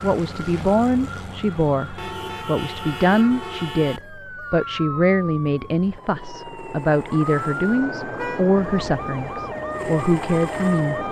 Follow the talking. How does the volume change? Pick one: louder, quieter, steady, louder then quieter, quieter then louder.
steady.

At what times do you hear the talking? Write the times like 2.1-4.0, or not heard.
0.0-11.0.